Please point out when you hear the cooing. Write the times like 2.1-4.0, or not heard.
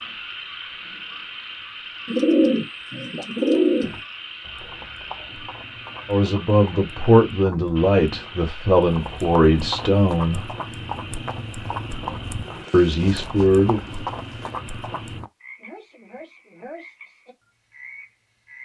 2.0-4.0, 12.7-14.6.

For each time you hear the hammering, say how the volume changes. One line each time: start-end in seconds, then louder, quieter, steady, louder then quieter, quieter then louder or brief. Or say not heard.
not heard.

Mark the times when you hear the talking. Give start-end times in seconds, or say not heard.
6.0-10.5, 12.7-13.8.